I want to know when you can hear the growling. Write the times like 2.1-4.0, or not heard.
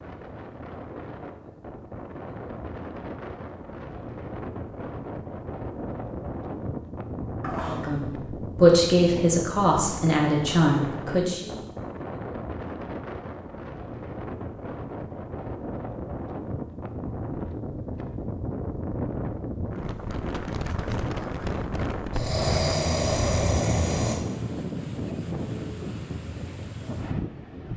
7.4-8.0, 22.1-24.2.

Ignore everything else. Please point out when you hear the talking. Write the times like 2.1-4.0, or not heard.
7.7-11.5.